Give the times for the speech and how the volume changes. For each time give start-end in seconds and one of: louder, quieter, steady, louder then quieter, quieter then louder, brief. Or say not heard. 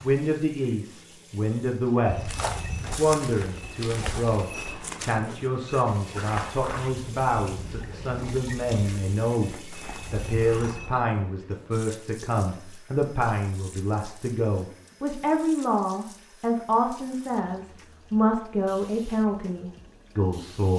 0.0-20.7 steady.